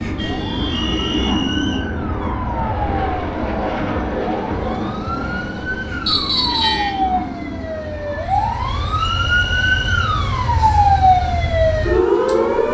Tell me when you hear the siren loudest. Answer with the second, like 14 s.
11 s.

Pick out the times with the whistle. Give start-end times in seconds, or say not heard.
0.7-1.9, 6.0-6.9, 8.9-10.1.